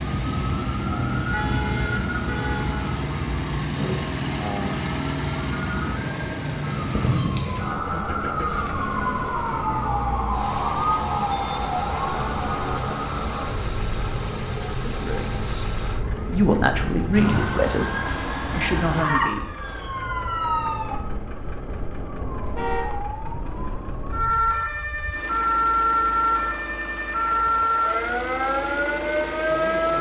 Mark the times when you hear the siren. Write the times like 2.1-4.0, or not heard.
0.0-29.9.